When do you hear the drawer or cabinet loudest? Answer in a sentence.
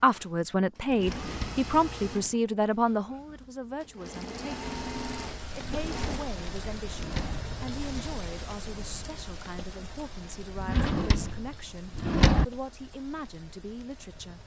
The volume of the drawer or cabinet peaks at 12 seconds.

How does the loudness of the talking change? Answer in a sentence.
The volume of the talking goes down.